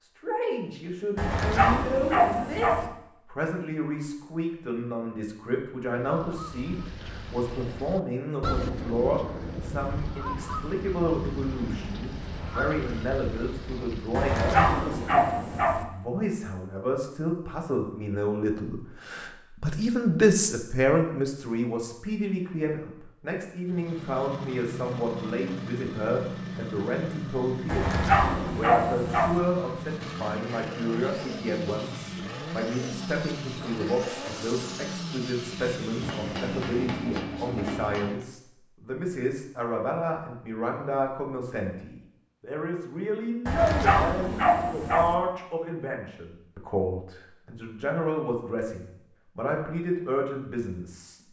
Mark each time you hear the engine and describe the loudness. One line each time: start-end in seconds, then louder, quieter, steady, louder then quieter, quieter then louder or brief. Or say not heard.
23.6-37.1 steady.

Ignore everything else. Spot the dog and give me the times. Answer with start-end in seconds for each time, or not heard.
1.1-2.9, 14.1-15.8, 27.6-29.4, 43.5-45.1.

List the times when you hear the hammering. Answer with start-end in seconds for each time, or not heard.
36.0-38.2.